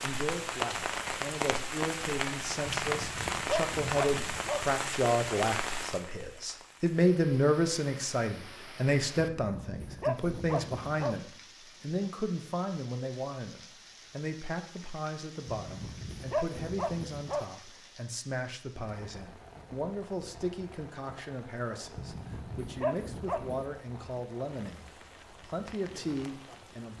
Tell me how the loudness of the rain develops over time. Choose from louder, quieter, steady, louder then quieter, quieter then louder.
quieter.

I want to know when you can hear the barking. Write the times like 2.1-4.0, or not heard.
2.6-4.7, 9.2-11.2, 15.4-17.4, 21.9-23.7.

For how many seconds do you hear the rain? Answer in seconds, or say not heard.
27 s.